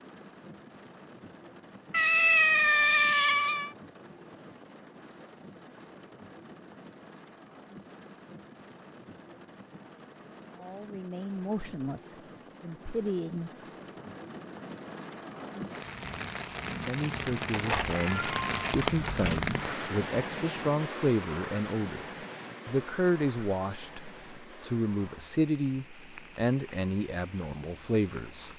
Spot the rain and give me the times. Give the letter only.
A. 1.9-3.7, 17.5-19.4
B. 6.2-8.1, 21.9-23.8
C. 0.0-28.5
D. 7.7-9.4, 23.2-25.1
C.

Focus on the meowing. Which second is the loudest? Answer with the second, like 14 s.
2 s.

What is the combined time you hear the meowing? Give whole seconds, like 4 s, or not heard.
4 s.